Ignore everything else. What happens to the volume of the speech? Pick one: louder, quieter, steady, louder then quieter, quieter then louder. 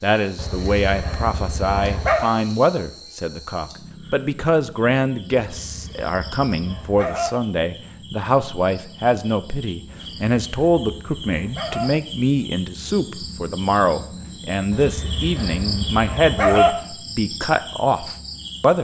steady.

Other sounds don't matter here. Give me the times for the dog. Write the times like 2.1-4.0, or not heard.
0.3-2.3, 5.5-7.3, 9.8-11.9, 14.7-16.7.